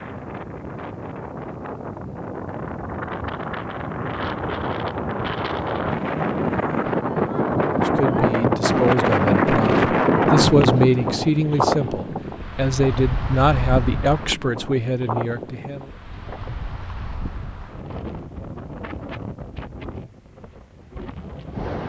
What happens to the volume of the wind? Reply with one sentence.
The volume of the wind goes up, then down.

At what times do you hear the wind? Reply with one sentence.
You can hear the wind from 0.0 to 21.8 s.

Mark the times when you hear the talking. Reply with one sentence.
You can hear the talking from 7.8 to 15.9 s.